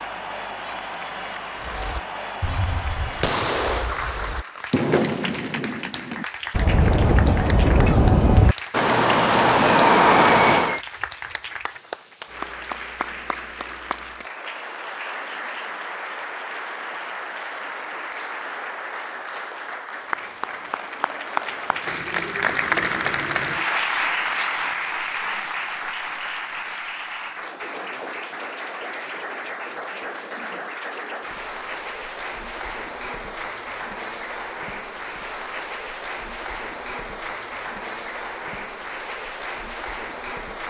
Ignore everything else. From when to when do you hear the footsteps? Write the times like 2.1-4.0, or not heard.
not heard.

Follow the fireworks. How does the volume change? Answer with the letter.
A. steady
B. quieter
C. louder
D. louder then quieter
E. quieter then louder
C.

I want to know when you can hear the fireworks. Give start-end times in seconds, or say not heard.
1.6-10.8.